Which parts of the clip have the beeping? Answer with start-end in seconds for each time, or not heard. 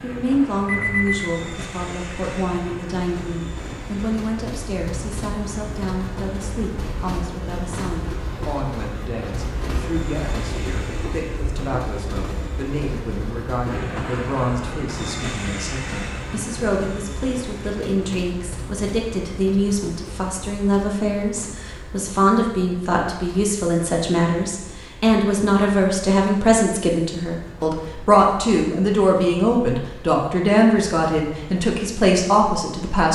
0.7-1.3.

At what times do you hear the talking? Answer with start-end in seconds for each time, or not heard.
0.0-33.1.